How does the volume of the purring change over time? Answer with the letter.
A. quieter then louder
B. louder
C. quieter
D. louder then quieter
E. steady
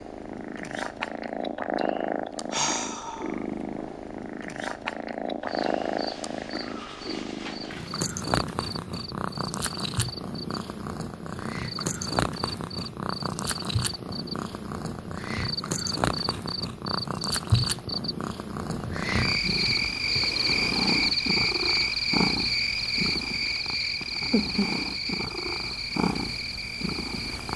E.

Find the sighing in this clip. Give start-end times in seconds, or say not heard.
2.5-3.4.